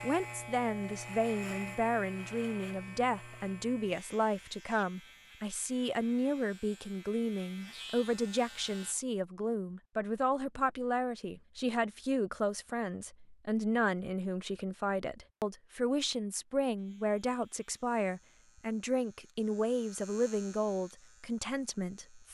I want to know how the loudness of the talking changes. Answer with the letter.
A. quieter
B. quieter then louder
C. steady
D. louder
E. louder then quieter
C.